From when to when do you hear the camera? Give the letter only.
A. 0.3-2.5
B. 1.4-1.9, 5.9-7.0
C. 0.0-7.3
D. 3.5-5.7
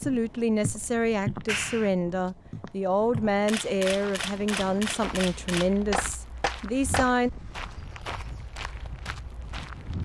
D.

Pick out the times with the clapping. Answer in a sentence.
The clapping can be heard from 1.4 to 1.9 s and from 5.9 to 7.0 s.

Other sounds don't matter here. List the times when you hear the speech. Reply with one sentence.
The speech can be heard from 0.0 to 7.3 s.